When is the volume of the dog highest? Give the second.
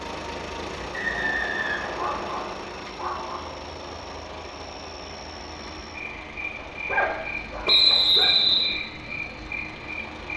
7 s.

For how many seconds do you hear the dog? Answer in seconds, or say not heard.
3 s.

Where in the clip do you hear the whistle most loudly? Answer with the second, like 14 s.
8 s.